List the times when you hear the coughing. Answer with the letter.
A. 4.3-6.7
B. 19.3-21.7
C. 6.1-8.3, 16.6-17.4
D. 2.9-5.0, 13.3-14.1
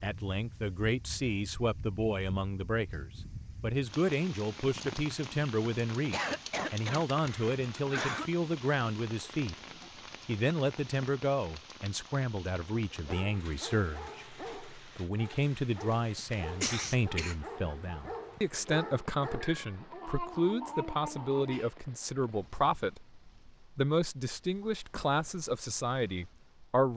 C.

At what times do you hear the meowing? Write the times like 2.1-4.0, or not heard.
19.3-21.7.